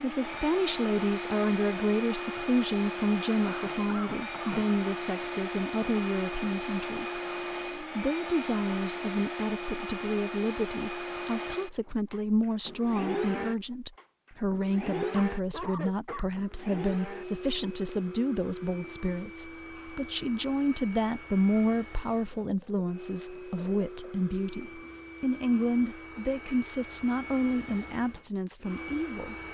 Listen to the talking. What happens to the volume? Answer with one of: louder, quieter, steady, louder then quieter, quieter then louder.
steady.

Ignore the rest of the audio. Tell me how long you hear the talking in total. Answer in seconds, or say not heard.
29 s.